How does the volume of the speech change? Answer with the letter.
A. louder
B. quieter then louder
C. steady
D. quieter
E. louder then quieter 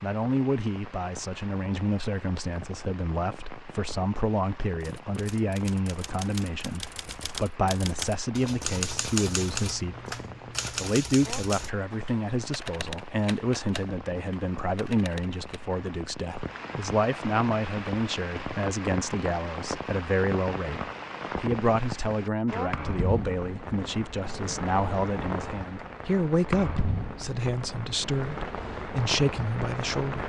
C.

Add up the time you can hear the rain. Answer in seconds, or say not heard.
30 s.